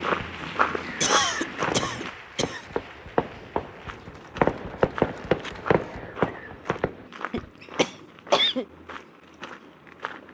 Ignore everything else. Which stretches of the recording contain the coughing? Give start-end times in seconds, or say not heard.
1.0-2.6, 7.3-8.7.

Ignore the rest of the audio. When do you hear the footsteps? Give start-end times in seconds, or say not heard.
0.0-2.1, 3.9-10.2.